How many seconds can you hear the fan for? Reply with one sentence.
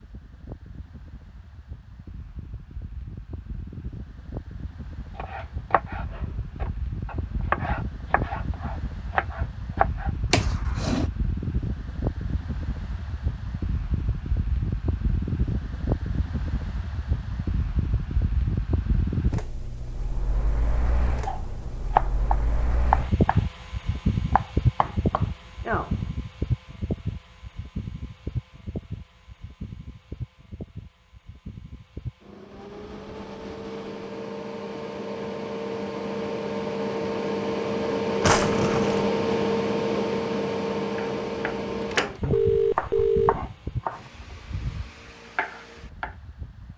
The fan can be heard for 47 seconds in total.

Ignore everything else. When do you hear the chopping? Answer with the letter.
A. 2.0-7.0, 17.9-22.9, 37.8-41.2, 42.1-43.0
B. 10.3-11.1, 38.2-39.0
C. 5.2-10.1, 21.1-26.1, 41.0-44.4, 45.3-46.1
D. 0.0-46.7
C.